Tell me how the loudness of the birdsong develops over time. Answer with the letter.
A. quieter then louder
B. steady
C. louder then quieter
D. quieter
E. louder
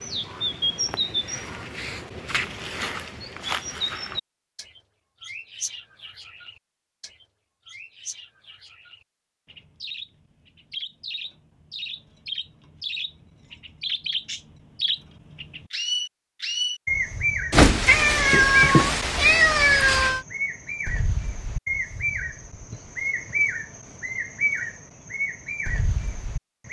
A.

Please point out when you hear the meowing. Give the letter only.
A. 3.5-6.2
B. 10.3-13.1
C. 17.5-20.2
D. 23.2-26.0
C.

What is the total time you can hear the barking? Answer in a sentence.
You can't hear the barking here.